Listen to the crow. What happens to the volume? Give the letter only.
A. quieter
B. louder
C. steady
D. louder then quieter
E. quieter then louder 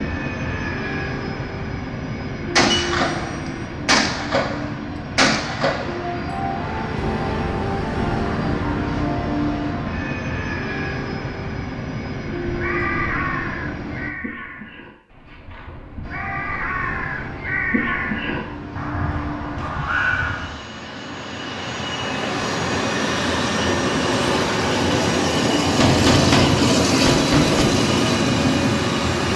E.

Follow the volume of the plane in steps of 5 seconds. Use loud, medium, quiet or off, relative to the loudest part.
medium, medium, medium, quiet, medium, loud.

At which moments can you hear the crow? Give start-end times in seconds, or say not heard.
12.4-20.8.